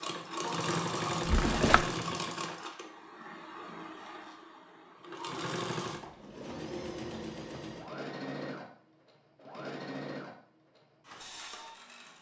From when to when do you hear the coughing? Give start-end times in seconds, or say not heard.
not heard.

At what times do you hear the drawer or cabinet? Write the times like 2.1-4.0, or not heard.
1.2-1.9.